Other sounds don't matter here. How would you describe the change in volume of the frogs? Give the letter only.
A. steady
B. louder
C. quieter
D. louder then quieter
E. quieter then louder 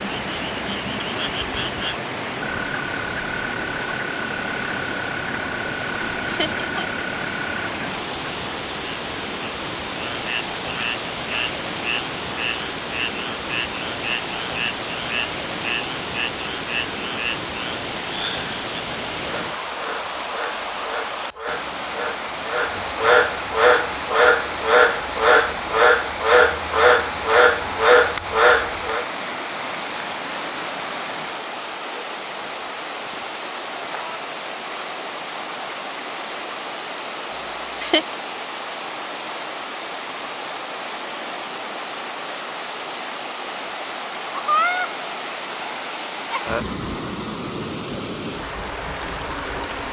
B.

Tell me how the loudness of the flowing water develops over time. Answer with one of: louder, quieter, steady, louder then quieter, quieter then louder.
steady.